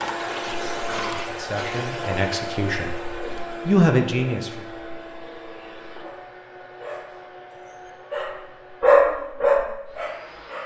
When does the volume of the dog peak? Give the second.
9 s.